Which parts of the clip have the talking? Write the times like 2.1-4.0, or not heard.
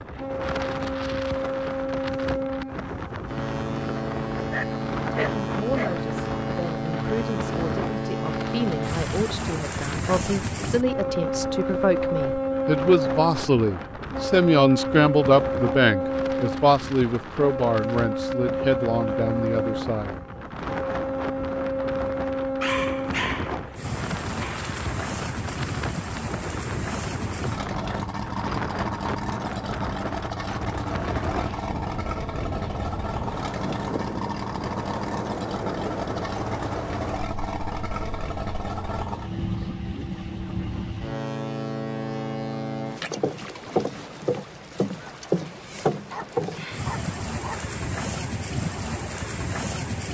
5.1-20.1.